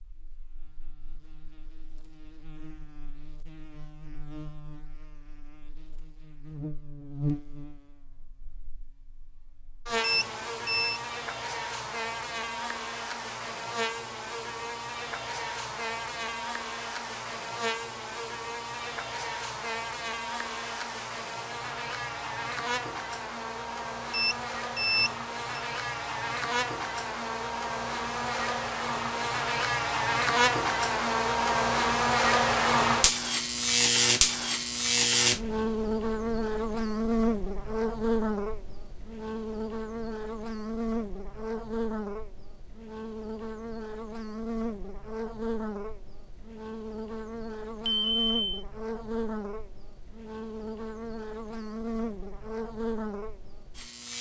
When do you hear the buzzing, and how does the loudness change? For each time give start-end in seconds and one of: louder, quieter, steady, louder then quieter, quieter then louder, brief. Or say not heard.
0.0-54.1 louder then quieter.